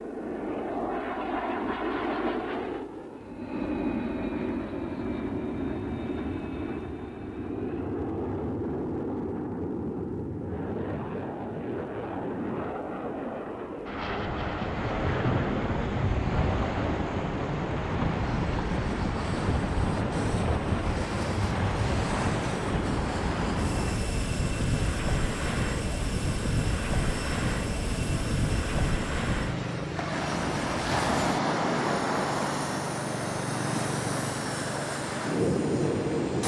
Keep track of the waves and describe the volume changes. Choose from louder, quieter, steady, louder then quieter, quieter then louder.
steady.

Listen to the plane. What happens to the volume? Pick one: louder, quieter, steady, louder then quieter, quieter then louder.
quieter.